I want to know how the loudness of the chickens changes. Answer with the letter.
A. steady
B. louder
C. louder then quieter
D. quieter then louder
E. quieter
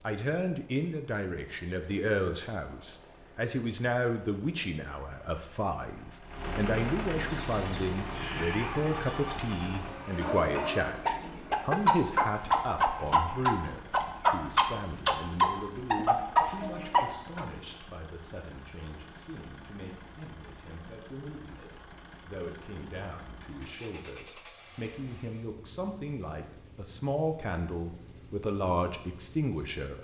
B.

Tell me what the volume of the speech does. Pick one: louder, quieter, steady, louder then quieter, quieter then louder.
quieter then louder.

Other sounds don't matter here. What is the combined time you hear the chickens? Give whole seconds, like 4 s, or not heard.
10 s.